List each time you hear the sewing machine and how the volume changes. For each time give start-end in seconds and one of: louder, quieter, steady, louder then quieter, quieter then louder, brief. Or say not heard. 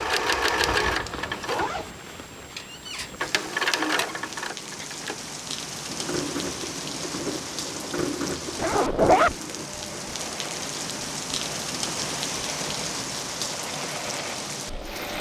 0.0-15.1 quieter.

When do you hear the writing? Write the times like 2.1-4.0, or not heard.
not heard.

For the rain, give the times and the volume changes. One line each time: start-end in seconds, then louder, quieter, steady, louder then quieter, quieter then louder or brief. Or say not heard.
0.1-15.1 louder.